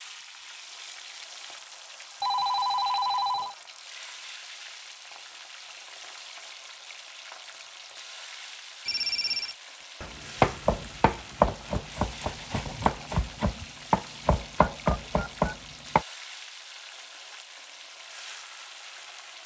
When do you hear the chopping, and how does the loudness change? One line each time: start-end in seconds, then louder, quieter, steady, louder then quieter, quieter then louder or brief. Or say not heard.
10.0-16.1 quieter then louder.